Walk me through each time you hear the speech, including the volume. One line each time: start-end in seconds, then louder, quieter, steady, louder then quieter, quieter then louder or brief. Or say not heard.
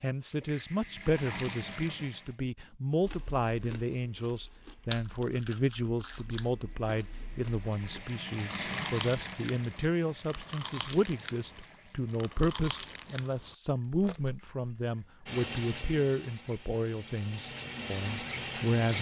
0.0-18.9 steady.